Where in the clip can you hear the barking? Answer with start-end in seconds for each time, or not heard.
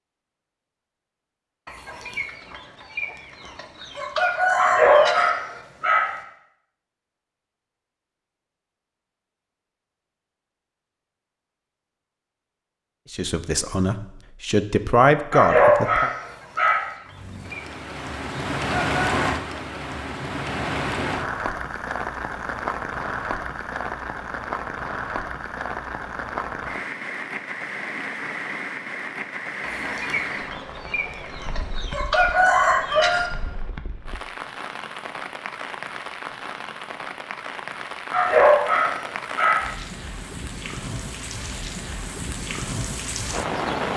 4.5-6.2, 15.3-16.9, 38.1-39.7.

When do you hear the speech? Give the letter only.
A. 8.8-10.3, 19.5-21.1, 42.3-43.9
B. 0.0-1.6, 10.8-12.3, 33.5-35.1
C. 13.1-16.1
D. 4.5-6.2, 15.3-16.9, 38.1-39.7
C.